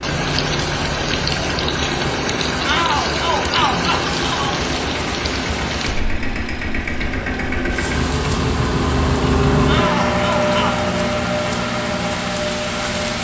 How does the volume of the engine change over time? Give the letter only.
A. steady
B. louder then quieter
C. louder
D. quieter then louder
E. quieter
C.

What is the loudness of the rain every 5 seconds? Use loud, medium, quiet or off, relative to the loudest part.
loud, medium, medium.